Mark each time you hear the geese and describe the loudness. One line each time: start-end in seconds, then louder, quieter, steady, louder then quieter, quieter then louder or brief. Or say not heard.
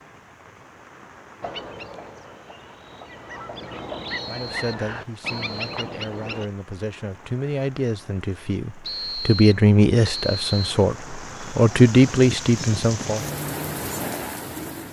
1.4-6.5 louder.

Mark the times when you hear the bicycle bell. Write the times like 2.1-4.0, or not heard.
not heard.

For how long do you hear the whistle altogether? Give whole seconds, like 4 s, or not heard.
4 s.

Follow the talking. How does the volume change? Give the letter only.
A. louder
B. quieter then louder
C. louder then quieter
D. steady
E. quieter
A.